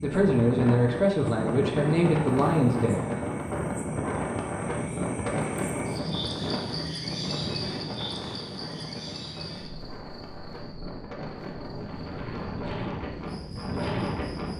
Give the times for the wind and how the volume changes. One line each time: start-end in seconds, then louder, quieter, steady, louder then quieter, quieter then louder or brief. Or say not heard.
0.0-14.5 quieter then louder.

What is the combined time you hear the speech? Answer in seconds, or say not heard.
3 s.